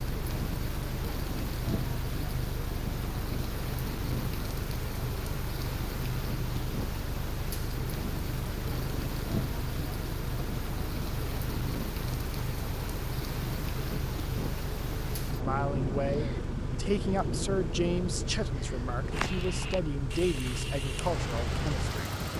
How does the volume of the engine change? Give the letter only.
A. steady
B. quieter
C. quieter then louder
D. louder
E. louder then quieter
A.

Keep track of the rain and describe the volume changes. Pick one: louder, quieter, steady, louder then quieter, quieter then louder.
steady.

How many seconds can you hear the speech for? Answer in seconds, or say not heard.
7 s.